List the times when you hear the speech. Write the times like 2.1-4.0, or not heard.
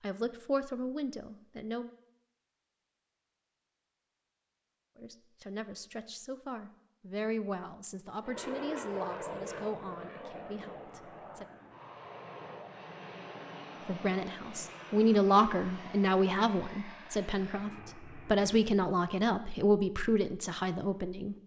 0.0-1.9, 5.0-11.4, 13.8-21.4.